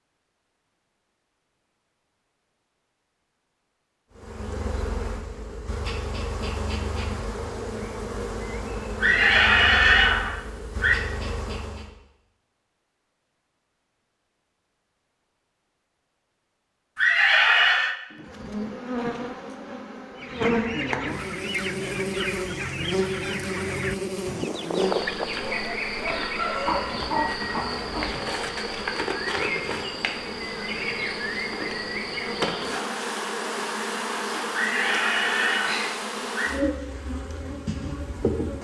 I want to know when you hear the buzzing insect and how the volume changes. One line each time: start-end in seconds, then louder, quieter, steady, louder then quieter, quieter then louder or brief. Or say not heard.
4.2-11.9 steady
18.1-38.5 steady.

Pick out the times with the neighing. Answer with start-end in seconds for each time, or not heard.
9.0-10.9, 16.9-17.9, 34.5-36.5.